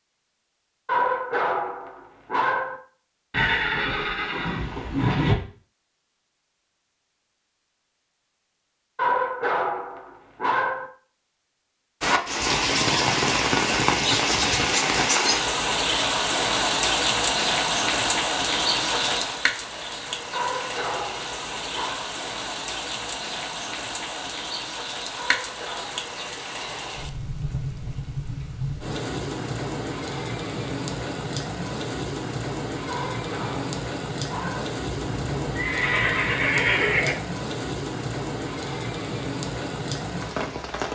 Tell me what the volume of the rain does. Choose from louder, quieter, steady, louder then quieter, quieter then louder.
quieter.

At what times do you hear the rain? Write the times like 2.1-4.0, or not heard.
12.0-40.9.